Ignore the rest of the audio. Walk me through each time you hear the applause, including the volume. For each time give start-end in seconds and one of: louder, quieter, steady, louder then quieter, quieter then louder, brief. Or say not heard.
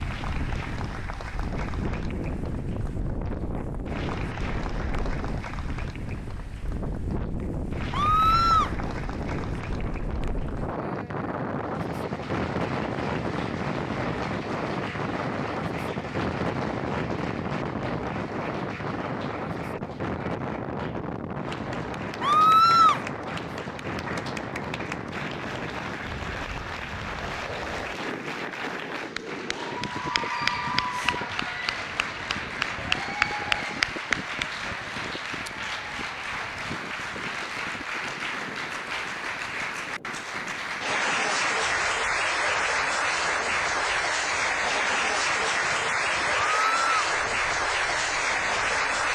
0.0-49.1 louder.